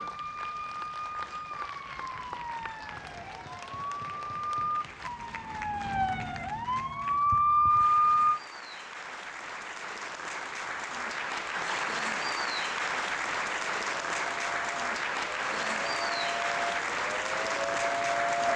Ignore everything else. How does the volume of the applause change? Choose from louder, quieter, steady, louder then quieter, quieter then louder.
louder.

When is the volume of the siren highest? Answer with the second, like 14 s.
8 s.